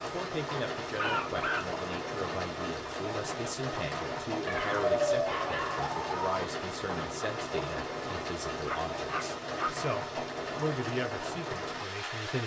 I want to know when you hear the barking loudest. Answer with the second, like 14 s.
5 s.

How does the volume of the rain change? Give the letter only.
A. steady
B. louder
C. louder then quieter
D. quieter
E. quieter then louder
A.